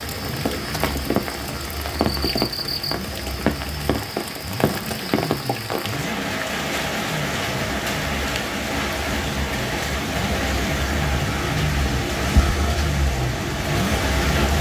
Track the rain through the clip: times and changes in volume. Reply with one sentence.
You can hear the rain from 0.0 to 14.5 s, at a steady volume.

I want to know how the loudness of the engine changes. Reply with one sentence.
The loudness of the engine goes up.